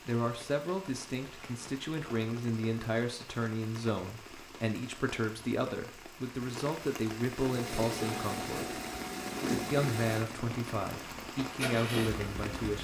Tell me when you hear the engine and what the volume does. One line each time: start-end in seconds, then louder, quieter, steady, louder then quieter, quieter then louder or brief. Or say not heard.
7.4-12.7 quieter then louder.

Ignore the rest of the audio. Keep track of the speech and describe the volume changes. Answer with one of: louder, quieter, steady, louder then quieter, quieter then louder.
steady.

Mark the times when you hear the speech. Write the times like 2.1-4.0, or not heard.
0.1-8.8, 9.7-12.7.